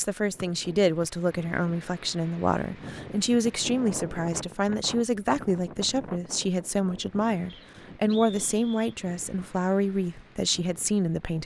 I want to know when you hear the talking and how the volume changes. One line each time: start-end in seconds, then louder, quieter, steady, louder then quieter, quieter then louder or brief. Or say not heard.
0.0-11.4 steady.